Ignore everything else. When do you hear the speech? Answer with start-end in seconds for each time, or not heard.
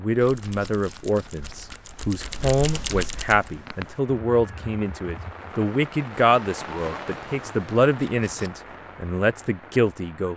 0.0-10.3.